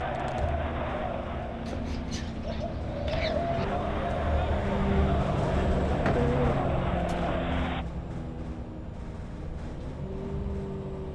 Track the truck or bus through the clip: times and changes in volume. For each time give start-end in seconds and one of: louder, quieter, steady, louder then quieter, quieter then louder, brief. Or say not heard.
0.0-11.1 louder then quieter.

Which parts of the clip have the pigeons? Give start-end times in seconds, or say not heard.
1.6-3.6, 5.7-7.3.